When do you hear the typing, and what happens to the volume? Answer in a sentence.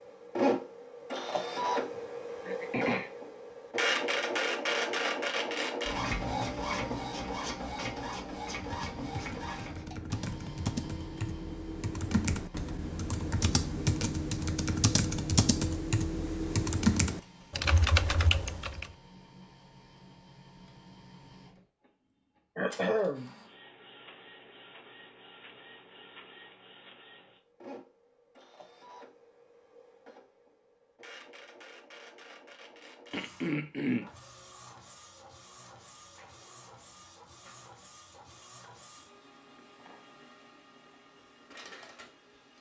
You can hear the typing from 8.5 to 18.9 s, getting louder.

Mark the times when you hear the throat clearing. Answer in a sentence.
You can hear the throat clearing from 2.5 to 3.1 s, from 22.6 to 23.3 s and from 33.1 to 34.0 s.